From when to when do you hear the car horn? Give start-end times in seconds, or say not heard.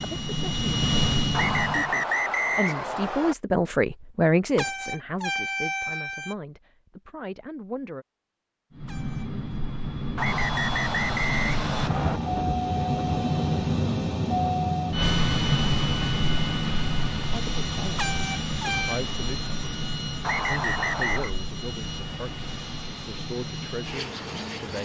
4.5-6.3, 8.8-9.6, 17.9-19.0.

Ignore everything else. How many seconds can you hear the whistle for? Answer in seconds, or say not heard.
5 s.